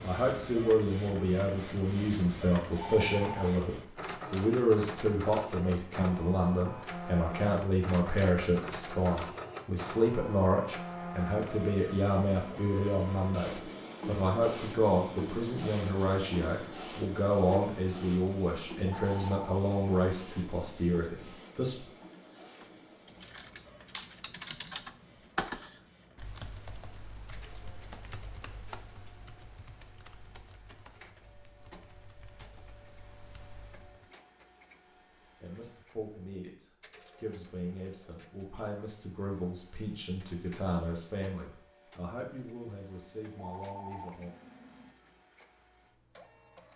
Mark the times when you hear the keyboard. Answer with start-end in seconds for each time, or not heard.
22.6-34.1.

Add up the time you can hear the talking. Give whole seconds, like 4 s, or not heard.
31 s.